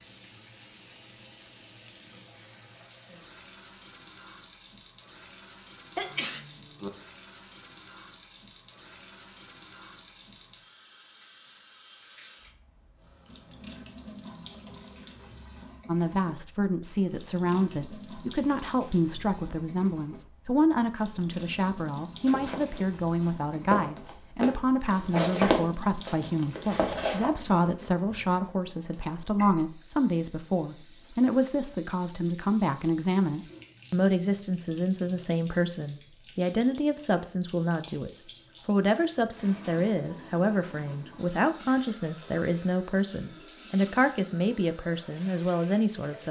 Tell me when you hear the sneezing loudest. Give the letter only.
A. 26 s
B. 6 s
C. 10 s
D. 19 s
B.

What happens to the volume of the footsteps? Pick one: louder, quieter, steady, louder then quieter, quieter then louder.
louder then quieter.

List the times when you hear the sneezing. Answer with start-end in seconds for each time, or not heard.
6.0-6.9, 25.1-25.6.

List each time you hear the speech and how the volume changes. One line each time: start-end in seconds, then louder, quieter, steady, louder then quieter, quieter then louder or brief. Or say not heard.
15.8-46.2 steady.